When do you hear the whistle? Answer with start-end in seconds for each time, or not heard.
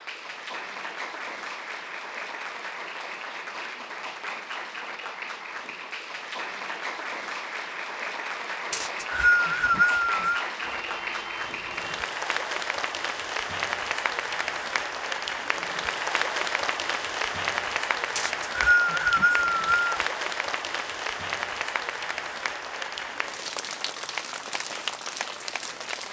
8.7-10.4, 18.1-20.1.